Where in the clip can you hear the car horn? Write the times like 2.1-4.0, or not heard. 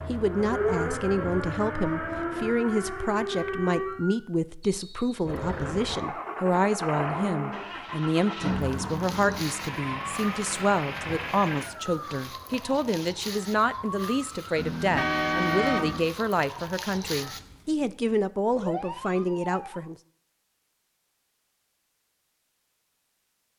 14.6-16.1.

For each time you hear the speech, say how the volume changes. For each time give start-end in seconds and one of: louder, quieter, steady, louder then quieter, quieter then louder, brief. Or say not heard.
0.1-19.9 steady.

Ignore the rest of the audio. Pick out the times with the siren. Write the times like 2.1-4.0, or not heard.
0.1-4.3, 8.5-19.9.